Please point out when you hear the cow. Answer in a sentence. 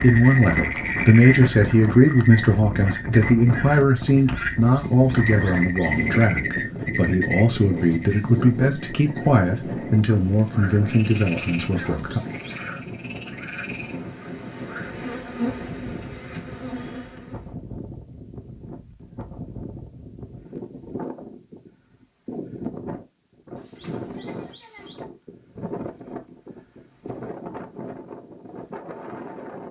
You can't hear the cow here.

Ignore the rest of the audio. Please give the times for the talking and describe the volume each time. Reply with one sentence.
You can hear the talking from 0.0 to 12.2 s, getting quieter.